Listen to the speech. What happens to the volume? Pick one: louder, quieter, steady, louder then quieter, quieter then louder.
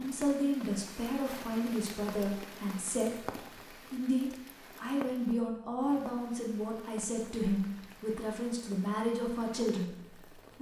steady.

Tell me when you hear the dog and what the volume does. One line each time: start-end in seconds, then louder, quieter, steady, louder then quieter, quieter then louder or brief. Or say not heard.
not heard.